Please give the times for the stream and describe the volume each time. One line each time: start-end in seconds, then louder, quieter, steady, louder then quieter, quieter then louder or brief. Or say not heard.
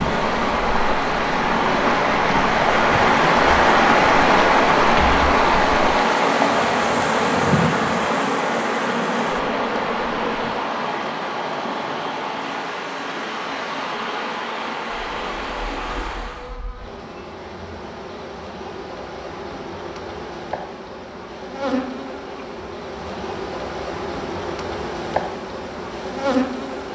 0.0-16.6 quieter.